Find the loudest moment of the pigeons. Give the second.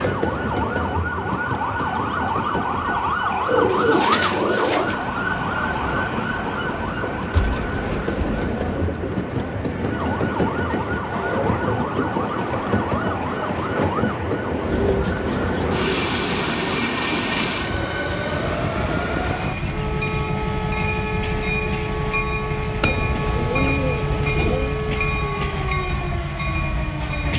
4 s.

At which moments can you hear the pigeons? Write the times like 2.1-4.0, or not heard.
3.5-5.0, 7.3-9.1, 14.7-16.9, 22.8-24.8.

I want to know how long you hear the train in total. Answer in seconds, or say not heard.
27 s.